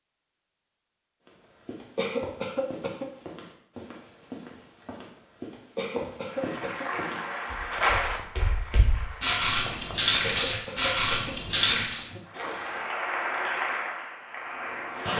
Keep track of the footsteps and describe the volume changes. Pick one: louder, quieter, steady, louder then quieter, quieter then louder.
louder.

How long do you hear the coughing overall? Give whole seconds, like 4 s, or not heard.
4 s.